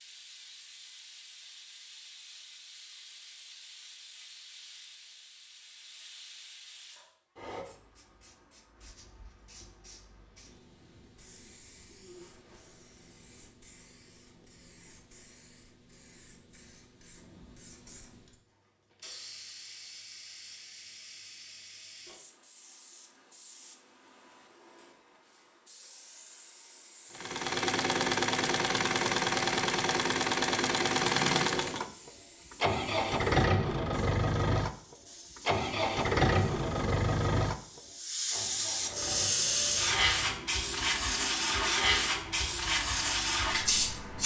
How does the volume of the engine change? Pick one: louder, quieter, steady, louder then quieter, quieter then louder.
quieter.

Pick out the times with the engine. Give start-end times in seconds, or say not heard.
27.1-44.2.